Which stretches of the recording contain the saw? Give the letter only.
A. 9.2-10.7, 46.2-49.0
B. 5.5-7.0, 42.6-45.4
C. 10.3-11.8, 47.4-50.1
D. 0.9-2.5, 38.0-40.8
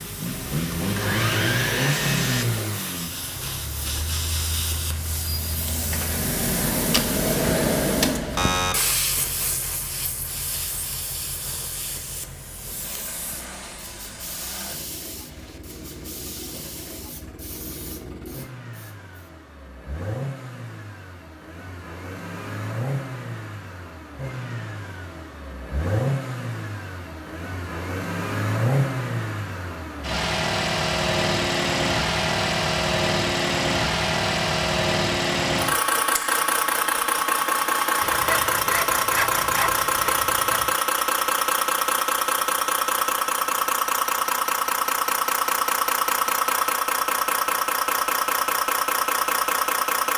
D.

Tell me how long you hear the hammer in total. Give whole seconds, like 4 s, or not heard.
not heard.